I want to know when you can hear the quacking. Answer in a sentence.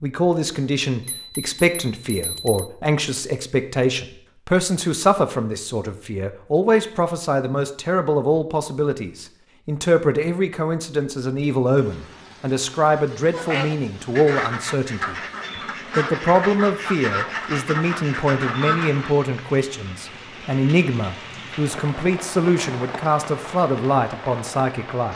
The quacking can be heard from 13.3 to 19.1 s.